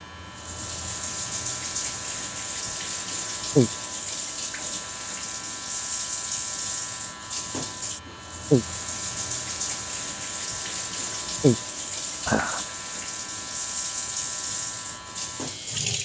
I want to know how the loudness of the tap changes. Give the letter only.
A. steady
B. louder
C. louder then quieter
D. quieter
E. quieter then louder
A.